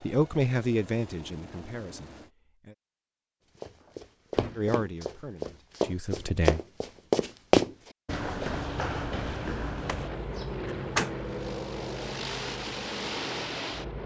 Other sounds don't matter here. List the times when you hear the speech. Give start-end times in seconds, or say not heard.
0.0-2.8, 4.5-6.6.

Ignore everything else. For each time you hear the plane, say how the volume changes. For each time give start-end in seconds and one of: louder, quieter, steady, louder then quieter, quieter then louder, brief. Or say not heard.
0.0-2.3 brief
8.4-14.0 louder.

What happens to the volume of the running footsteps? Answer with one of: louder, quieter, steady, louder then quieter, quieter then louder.
louder then quieter.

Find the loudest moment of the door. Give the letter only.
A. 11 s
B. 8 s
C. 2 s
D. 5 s
A.